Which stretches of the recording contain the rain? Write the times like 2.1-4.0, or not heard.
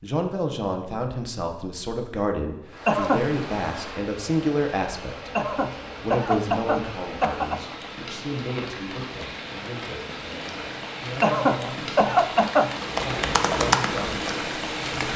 2.6-15.1.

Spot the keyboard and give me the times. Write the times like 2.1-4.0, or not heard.
12.7-15.1.